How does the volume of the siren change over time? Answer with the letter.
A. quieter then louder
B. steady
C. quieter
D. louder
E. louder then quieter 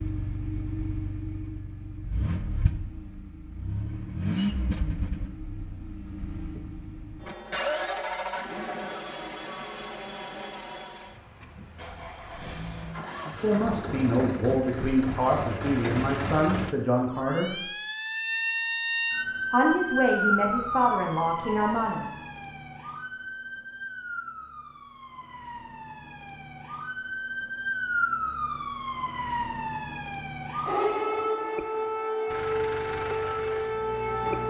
A.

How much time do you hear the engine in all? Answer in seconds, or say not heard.
19 s.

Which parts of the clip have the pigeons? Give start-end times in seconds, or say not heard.
not heard.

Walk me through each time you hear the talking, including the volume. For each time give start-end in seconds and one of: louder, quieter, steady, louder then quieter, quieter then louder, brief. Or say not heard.
13.4-17.6 steady
19.5-22.1 brief.